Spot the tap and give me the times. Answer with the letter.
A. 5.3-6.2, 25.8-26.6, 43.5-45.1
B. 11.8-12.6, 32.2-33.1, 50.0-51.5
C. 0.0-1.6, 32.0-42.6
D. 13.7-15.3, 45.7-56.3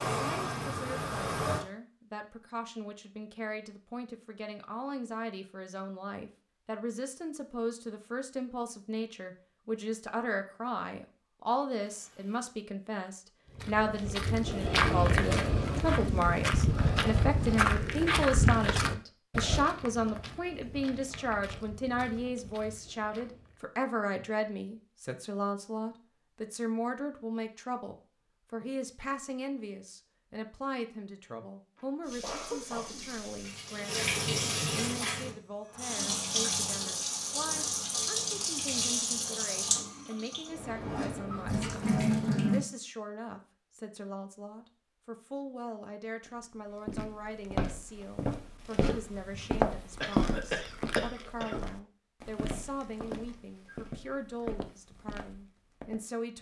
C.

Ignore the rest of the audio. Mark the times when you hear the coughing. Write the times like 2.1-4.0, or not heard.
11.8-12.6, 32.2-33.1, 50.0-51.5.